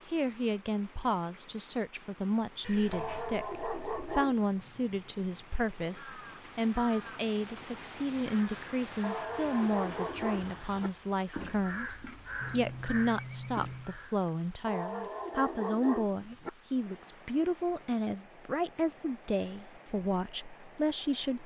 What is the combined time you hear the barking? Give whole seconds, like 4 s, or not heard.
5 s.